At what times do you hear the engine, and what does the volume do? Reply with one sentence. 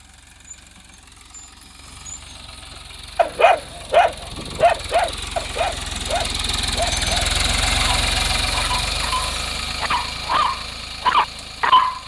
The engine can be heard from 0.0 to 12.0 s, getting louder then quieter.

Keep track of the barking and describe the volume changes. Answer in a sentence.
The loudness of the barking goes down, then up.